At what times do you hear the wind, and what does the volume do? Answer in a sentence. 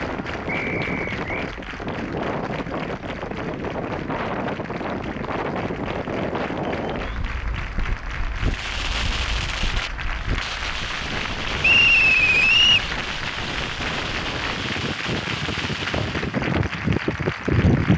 You can hear the wind from 0.0 to 17.9 s, getting quieter then louder.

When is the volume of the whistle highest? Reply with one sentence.
The volume of the whistle peaks at 12 seconds.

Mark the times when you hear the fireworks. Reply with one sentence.
The fireworks can be heard from 8.3 to 16.4 s.